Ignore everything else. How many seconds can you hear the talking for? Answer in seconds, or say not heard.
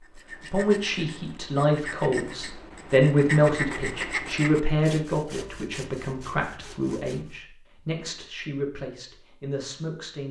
10 s.